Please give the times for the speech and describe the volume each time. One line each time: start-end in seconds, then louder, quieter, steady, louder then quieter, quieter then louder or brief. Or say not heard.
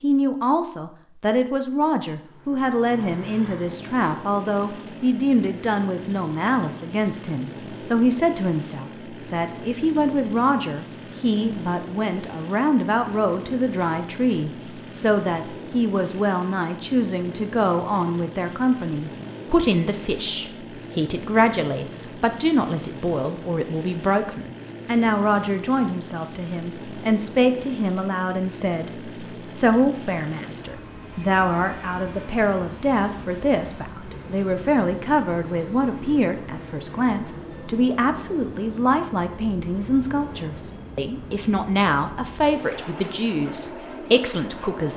0.0-44.9 steady.